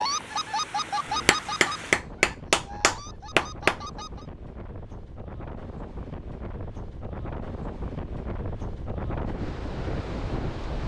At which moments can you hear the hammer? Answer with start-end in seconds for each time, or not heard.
1.1-3.8.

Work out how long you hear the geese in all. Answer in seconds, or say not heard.
4 s.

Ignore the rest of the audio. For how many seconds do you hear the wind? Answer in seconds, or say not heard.
11 s.